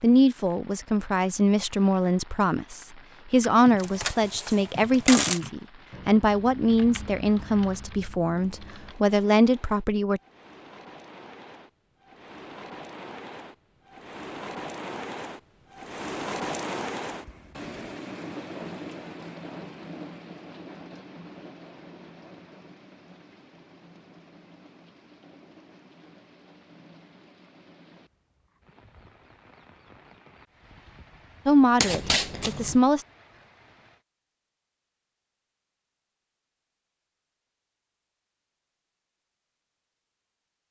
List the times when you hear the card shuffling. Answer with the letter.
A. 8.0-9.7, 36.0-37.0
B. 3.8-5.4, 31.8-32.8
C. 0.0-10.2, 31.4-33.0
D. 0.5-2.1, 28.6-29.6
B.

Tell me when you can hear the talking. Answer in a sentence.
You can hear the talking from 0.0 to 10.2 s and from 31.4 to 33.0 s.